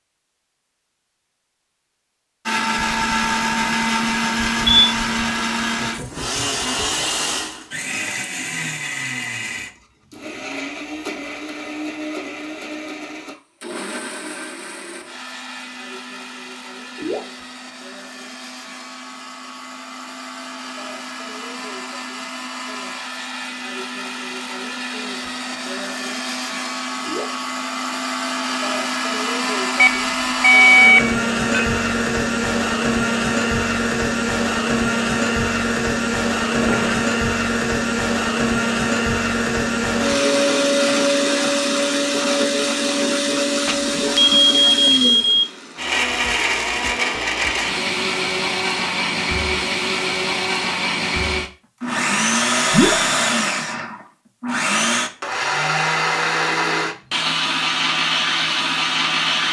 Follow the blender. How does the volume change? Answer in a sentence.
The volume of the blender goes down, then up.